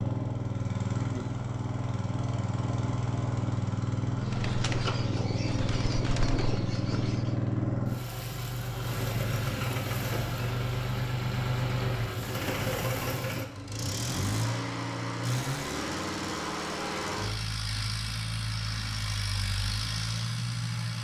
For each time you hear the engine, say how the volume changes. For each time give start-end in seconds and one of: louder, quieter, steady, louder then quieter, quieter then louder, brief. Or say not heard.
0.0-20.9 steady.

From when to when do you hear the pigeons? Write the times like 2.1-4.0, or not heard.
4.2-7.3.